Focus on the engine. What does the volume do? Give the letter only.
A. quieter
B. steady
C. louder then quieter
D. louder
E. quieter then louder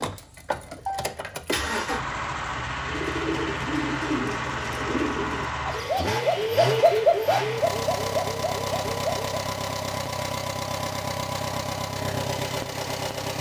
B.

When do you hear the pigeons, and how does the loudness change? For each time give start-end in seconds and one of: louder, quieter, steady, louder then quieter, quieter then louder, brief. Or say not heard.
2.8-9.3 louder then quieter.